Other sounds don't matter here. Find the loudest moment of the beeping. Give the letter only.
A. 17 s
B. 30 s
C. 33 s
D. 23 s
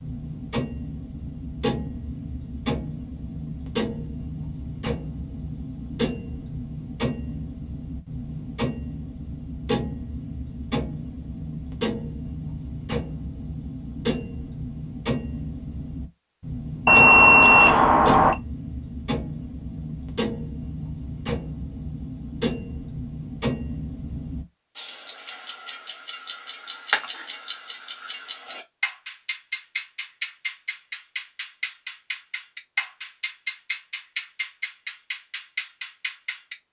A.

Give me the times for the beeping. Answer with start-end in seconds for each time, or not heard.
16.9-18.4.